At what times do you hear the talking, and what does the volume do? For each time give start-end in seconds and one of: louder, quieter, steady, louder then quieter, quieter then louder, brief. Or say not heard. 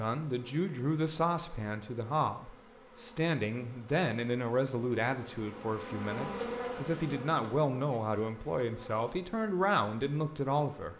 0.0-10.9 steady.